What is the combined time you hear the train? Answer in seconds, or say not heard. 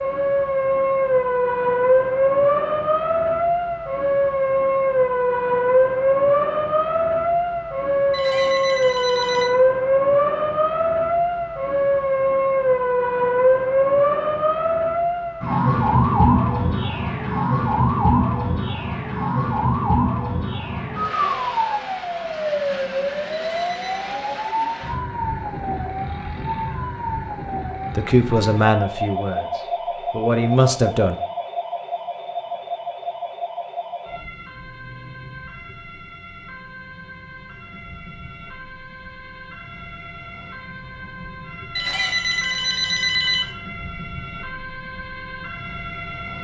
not heard.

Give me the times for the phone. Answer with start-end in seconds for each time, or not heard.
8.1-9.5, 23.4-24.1, 41.8-43.5.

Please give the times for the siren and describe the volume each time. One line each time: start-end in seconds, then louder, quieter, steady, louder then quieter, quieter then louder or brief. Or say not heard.
0.0-46.3 quieter.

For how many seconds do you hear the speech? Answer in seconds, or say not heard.
3 s.